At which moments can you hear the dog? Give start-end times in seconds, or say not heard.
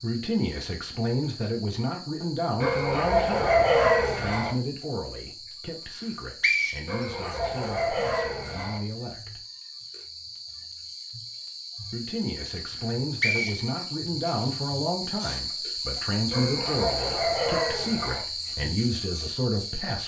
2.6-4.5, 6.8-8.8, 16.3-18.2.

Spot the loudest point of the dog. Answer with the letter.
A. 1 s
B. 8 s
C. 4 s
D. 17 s
C.